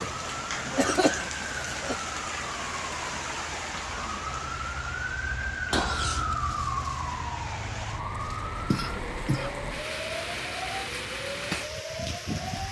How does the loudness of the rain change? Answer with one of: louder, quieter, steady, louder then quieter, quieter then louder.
quieter then louder.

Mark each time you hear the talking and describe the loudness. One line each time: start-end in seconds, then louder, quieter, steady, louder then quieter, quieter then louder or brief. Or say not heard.
not heard.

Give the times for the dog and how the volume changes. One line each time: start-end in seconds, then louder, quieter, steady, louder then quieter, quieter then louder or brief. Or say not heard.
not heard.